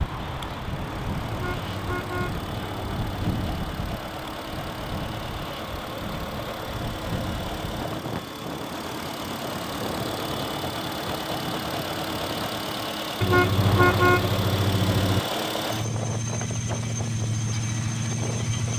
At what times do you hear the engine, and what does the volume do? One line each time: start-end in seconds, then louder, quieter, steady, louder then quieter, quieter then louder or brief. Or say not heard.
0.0-18.7 louder.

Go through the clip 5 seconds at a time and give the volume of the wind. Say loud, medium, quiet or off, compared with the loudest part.
loud, loud, loud, medium.